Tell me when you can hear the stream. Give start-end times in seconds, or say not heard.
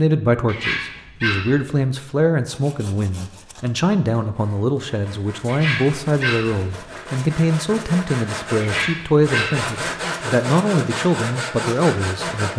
not heard.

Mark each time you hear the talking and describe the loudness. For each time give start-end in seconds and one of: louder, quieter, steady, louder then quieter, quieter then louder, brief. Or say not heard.
0.0-12.5 steady.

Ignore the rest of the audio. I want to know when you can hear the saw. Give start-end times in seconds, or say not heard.
2.5-12.5.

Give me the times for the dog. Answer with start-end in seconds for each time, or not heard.
0.5-1.9, 5.5-6.8, 8.6-9.7.